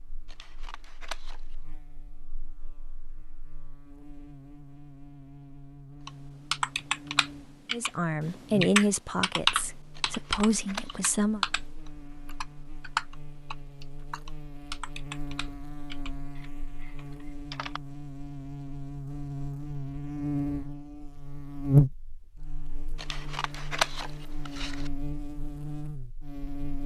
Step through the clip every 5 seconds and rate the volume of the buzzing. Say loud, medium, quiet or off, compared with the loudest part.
quiet, quiet, quiet, medium, loud, medium.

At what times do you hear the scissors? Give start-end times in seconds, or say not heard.
0.2-1.6, 9.9-11.0, 22.9-24.9.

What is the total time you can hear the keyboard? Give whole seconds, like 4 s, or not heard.
11 s.